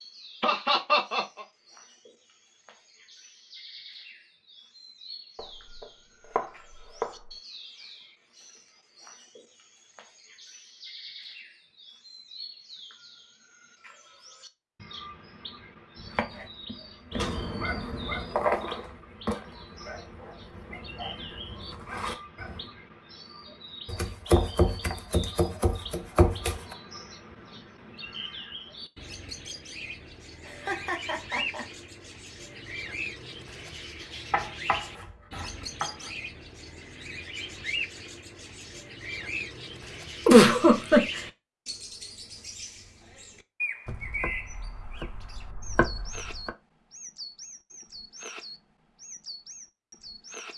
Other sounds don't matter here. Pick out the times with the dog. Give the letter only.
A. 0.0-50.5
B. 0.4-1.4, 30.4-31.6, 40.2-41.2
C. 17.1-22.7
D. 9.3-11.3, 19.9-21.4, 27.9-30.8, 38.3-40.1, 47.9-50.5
C.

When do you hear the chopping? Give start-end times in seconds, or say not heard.
5.3-7.3, 15.9-17.4, 23.9-26.8, 34.3-36.1, 43.9-46.5.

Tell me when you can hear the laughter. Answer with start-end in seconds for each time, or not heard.
0.4-1.4, 30.4-31.6, 40.2-41.2.